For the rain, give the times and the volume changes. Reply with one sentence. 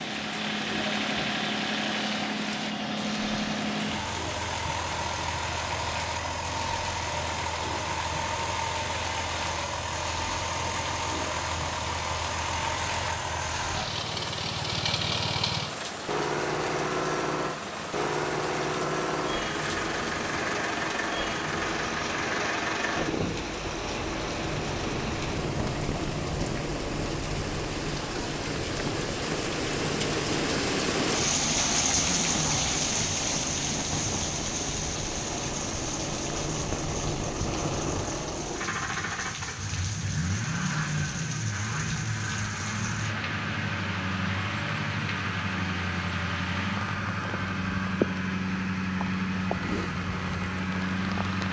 You can hear the rain from 0.0 to 51.4 s, getting louder then quieter.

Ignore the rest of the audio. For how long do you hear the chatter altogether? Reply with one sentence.
The chatter can't be heard in this clip.